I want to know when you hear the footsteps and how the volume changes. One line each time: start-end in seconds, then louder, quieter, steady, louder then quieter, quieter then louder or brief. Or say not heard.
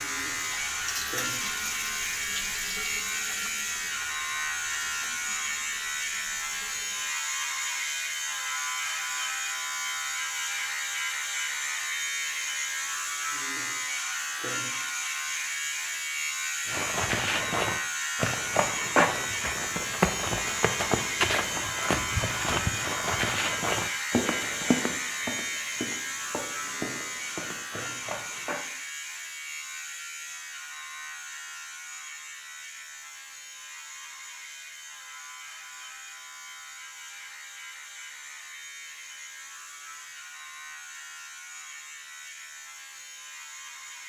16.6-28.6 quieter.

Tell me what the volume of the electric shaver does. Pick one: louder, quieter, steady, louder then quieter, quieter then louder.
quieter.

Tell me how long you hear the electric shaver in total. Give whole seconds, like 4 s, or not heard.
44 s.